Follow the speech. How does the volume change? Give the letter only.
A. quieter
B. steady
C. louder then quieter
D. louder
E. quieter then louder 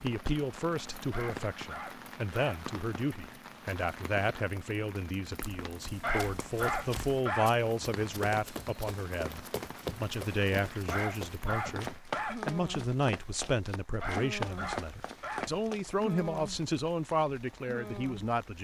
B.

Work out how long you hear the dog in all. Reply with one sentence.
The dog can be heard for 6 seconds in total.